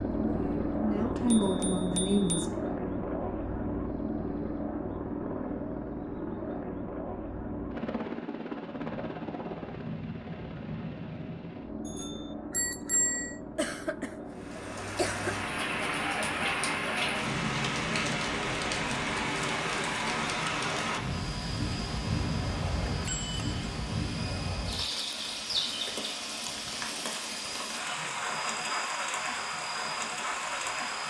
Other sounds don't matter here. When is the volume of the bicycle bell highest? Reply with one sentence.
The loudest moment of the bicycle bell is at 13 seconds.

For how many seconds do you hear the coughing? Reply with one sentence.
You can hear the coughing for 2 seconds altogether.